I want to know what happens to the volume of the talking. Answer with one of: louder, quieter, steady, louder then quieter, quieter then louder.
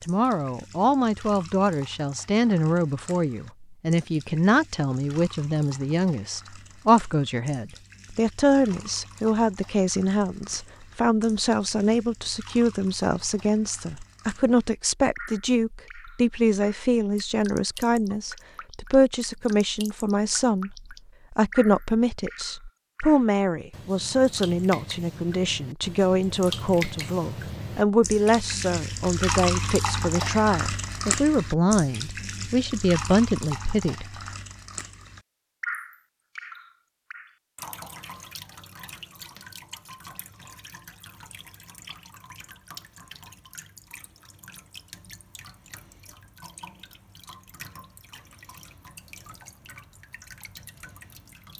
steady.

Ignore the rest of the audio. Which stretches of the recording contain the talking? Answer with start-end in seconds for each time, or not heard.
0.0-34.0.